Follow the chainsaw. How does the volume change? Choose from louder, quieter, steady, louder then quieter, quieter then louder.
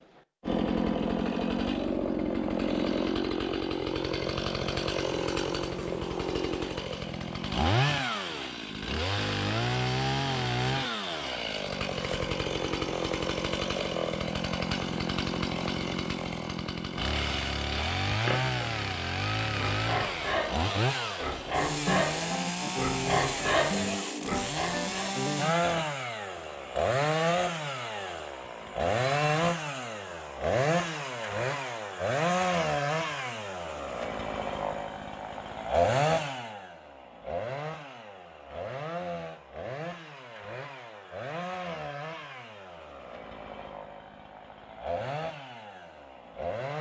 quieter.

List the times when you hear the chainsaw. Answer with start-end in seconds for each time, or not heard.
0.4-46.7.